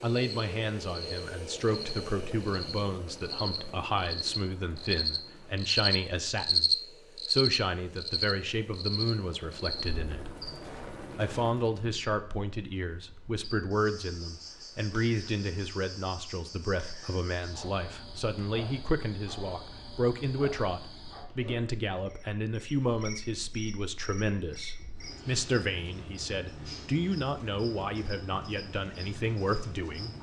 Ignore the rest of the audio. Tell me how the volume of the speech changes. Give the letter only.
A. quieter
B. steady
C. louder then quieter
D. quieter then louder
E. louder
B.